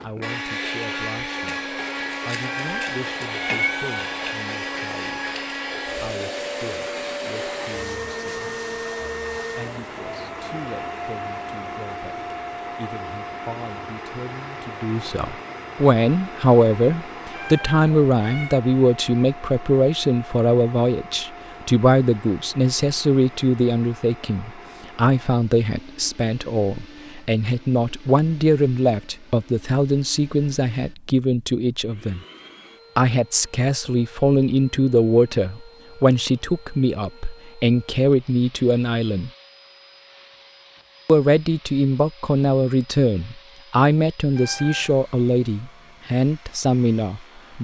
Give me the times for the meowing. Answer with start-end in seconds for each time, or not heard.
2.4-4.3, 17.3-18.6, 44.4-45.0.